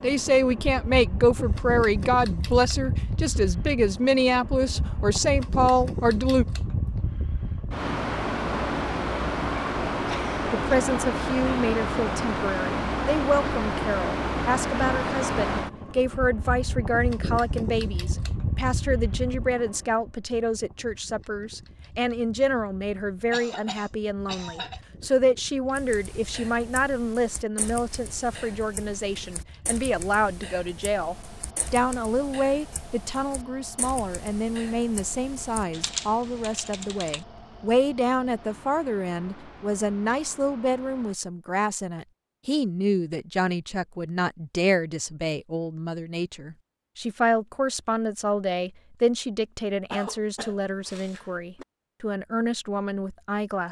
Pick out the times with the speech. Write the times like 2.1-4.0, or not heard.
0.0-6.5, 10.5-53.6.